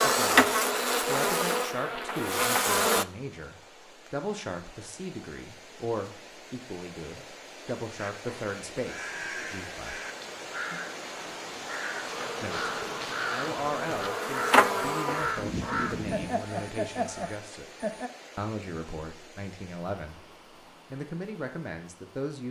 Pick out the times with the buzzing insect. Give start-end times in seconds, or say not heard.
0.0-3.0, 12.1-16.4.